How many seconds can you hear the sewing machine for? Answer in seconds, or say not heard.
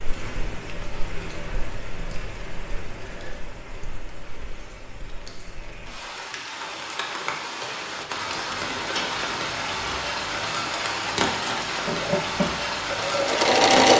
2 s.